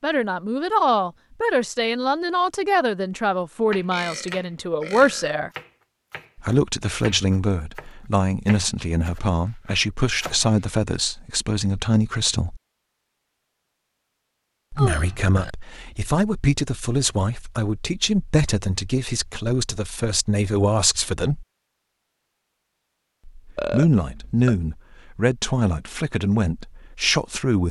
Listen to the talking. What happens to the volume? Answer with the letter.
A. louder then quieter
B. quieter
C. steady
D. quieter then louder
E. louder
C.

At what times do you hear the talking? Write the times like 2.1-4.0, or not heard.
0.0-5.5, 6.3-12.6, 14.7-21.4, 23.4-27.6.